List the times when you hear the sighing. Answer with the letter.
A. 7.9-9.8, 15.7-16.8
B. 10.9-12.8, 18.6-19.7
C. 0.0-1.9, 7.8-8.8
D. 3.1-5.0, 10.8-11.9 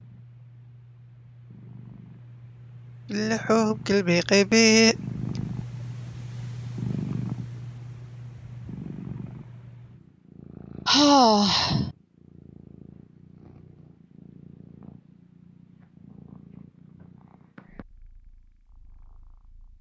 D.